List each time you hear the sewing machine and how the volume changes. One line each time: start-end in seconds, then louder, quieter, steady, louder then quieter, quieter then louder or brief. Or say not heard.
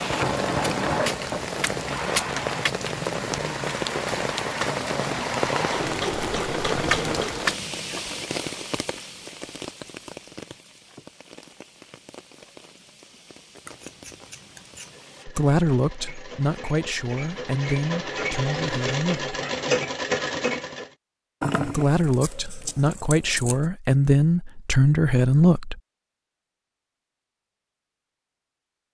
0.0-7.6 quieter then louder
14.8-20.9 louder.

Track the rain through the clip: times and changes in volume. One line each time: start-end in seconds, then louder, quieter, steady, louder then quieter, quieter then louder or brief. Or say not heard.
0.0-15.2 quieter.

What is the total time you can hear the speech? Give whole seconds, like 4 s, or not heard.
8 s.